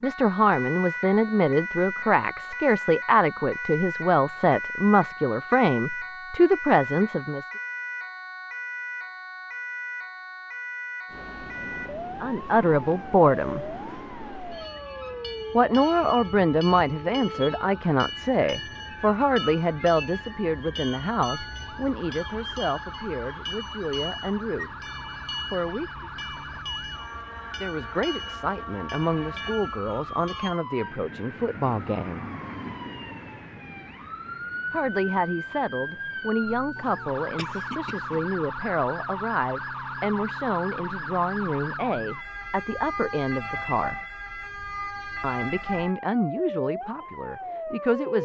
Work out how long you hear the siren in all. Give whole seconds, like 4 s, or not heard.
48 s.